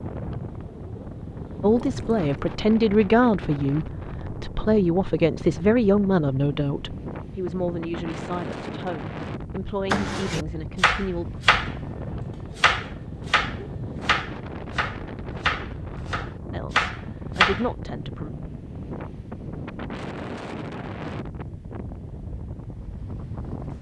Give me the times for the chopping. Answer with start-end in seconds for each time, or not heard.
9.9-17.7.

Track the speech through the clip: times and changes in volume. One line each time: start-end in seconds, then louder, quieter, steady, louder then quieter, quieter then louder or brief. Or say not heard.
1.6-11.3 quieter
16.5-18.3 brief.